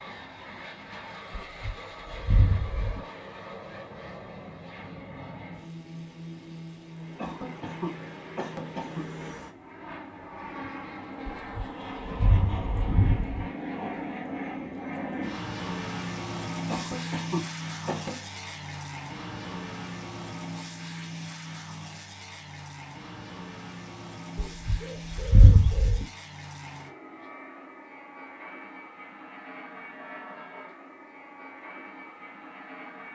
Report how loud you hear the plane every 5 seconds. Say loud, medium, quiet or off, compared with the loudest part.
medium, medium, loud, loud, medium, medium, medium.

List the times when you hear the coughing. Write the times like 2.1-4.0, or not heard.
7.2-9.1, 16.6-18.1.